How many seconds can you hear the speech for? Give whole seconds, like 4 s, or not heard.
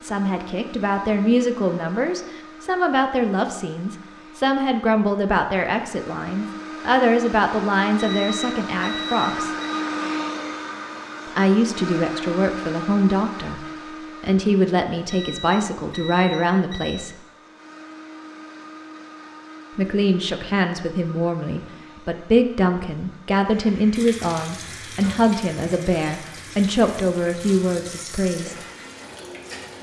24 s.